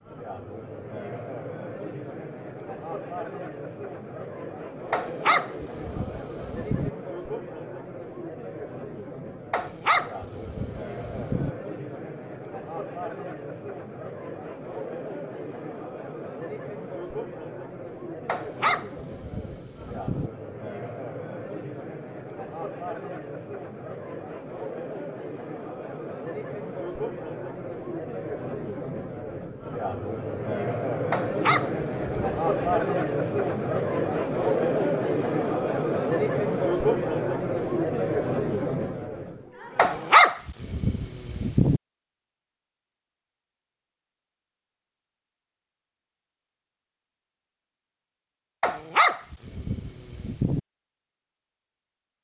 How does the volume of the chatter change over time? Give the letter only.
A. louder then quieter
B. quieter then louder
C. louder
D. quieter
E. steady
C.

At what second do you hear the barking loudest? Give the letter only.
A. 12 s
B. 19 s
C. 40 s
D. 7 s
C.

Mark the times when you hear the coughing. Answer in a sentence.
You can't hear the coughing here.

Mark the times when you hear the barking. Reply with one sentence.
The barking can be heard from 4.9 to 6.9 s, from 9.5 to 11.5 s, from 18.2 to 20.3 s, from 31.1 to 32.8 s, from 39.8 to 41.8 s and from 48.6 to 50.6 s.